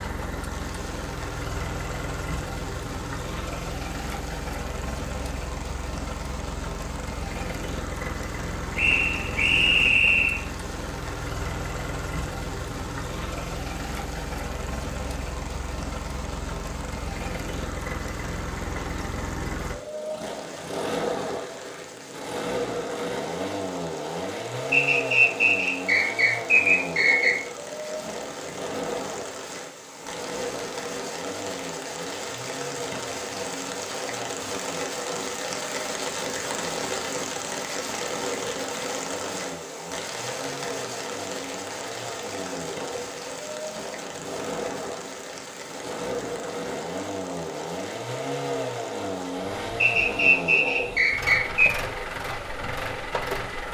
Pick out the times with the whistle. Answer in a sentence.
The whistle can be heard from 8.8 to 10.4 s, from 24.7 to 27.4 s and from 49.8 to 51.7 s.